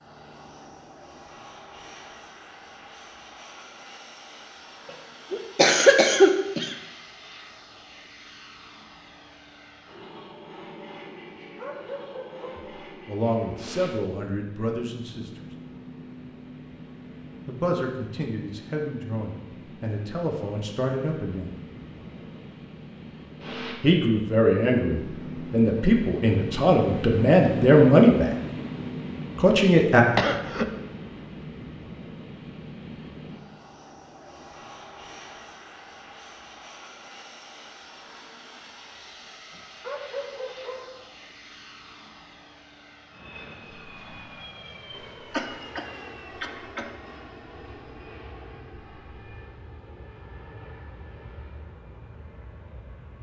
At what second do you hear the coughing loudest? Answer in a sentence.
The volume of the coughing peaks at 6 seconds.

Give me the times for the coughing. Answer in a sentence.
You can hear the coughing from 5.3 to 6.8 s, from 30.1 to 30.7 s and from 45.0 to 46.9 s.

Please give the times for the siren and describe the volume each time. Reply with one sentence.
The siren can't be heard in this clip.